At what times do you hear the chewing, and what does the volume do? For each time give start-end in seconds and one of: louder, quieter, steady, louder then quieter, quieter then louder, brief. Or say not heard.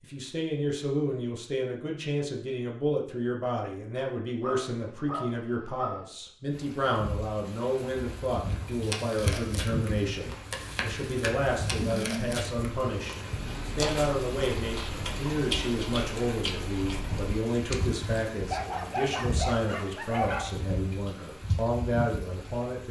8.5-18.1 steady.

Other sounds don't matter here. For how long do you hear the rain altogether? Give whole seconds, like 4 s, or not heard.
16 s.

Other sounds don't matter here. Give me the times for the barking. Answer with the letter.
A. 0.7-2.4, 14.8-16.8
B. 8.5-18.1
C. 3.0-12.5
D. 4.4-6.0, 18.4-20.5
D.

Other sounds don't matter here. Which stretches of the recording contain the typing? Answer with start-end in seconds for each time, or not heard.
not heard.